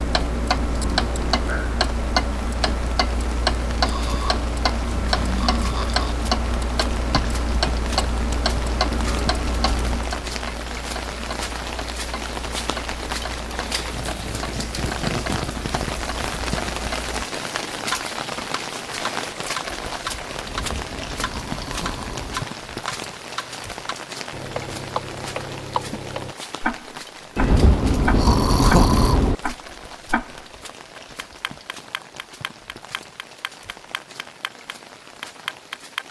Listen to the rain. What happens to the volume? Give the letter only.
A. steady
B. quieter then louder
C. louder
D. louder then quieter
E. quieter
D.